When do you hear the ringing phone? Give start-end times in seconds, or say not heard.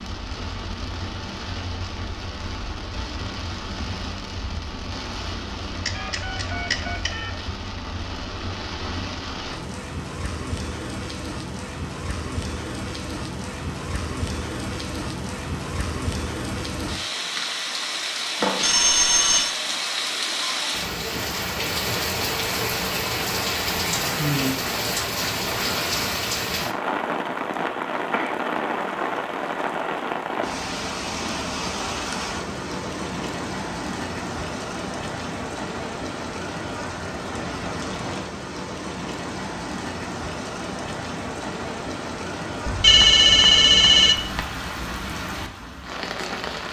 5.8-7.3, 18.4-19.6, 42.6-44.5.